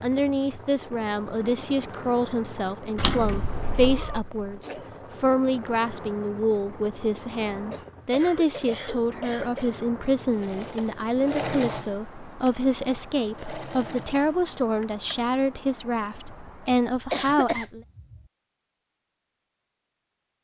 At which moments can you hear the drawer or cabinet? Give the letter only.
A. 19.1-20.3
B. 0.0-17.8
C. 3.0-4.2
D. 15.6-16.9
C.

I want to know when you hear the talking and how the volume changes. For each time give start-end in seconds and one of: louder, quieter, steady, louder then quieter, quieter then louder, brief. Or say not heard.
0.0-17.8 steady.